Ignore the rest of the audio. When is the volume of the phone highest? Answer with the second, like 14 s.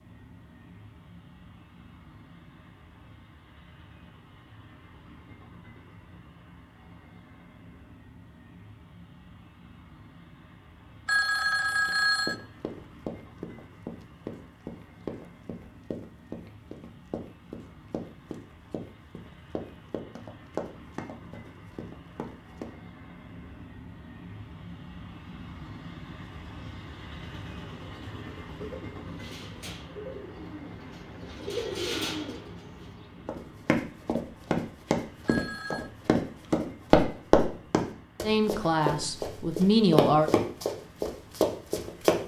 12 s.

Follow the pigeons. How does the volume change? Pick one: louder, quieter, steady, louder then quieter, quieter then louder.
louder.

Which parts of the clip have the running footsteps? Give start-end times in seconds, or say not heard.
11.8-22.7, 33.2-42.2.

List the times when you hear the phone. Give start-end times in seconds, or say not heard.
11.1-12.4, 35.2-35.9.